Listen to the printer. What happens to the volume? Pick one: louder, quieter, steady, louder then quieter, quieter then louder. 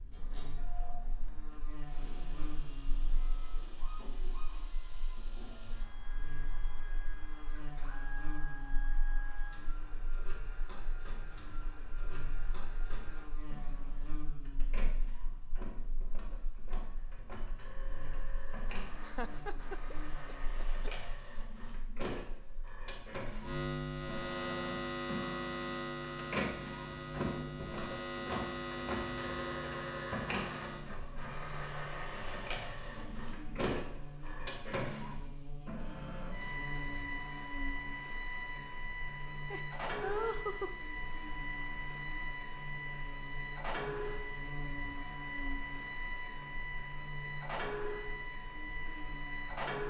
louder.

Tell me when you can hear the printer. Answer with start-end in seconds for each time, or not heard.
0.0-49.8.